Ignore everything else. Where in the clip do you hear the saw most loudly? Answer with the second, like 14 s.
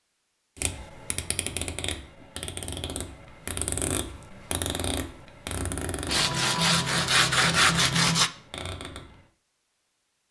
8 s.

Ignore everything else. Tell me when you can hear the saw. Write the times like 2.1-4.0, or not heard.
6.0-8.3.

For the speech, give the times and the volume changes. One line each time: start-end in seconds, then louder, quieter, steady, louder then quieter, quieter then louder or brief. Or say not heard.
not heard.